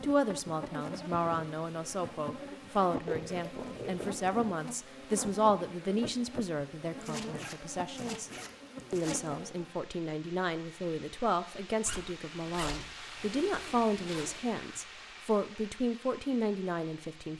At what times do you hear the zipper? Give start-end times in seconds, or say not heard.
3.0-4.2, 7.0-9.3, 11.8-14.5.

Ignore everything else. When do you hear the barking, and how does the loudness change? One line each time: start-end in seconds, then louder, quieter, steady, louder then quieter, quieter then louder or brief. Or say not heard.
not heard.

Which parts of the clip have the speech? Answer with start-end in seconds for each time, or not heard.
0.0-8.3, 8.9-17.3.